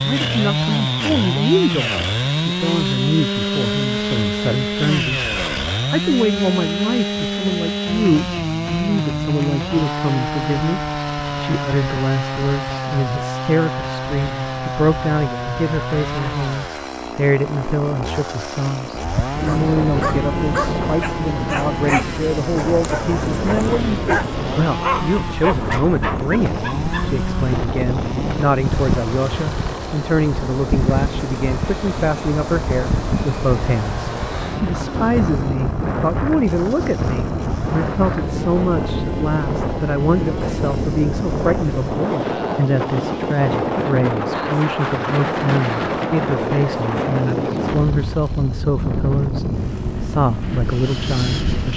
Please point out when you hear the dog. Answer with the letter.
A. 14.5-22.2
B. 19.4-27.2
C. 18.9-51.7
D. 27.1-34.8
B.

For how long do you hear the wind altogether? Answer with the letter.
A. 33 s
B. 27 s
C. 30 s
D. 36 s
A.